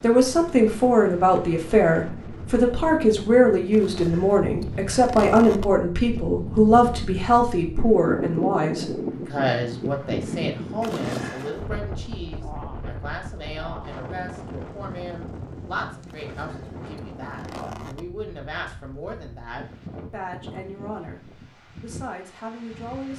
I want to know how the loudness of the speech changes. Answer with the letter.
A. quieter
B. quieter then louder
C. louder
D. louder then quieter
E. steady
A.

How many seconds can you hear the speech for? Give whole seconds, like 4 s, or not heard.
23 s.